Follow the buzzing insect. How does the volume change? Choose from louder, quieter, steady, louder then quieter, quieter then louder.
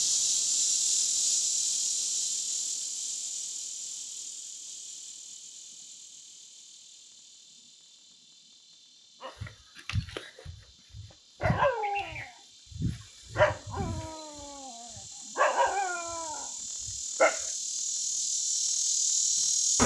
quieter then louder.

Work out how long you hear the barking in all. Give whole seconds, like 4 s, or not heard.
8 s.